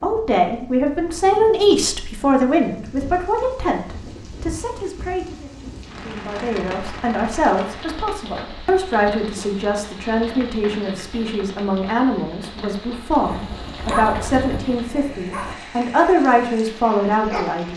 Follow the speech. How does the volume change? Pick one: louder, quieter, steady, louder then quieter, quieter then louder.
quieter then louder.